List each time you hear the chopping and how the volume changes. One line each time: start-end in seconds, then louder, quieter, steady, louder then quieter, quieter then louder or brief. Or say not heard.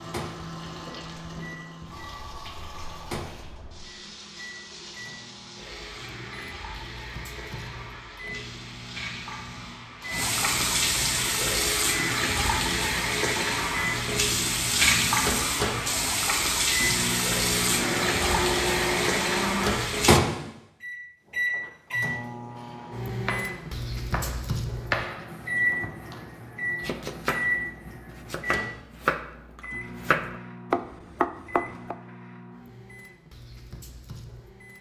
23.2-31.9 quieter then louder.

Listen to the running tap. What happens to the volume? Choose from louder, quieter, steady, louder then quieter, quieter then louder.
louder.